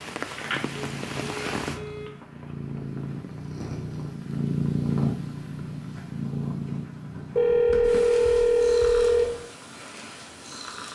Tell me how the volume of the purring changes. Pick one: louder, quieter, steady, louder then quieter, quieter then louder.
louder then quieter.